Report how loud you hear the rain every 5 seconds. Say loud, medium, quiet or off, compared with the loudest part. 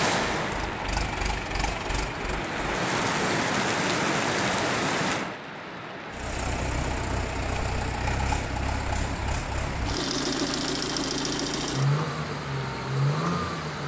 loud, medium, medium.